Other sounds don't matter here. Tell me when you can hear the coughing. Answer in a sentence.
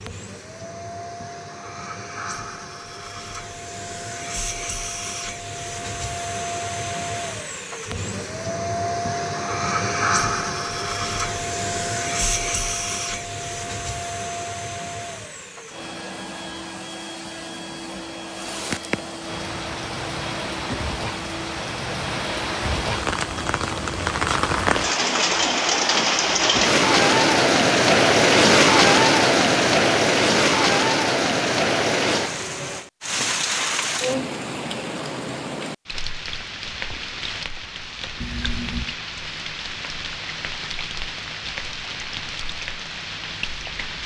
The coughing can't be heard in this clip.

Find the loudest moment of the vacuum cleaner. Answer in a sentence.
The volume of the vacuum cleaner peaks at 10 seconds.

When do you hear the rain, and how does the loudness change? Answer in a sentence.
The rain can be heard from 18.3 to 44.0 s, getting louder then quieter.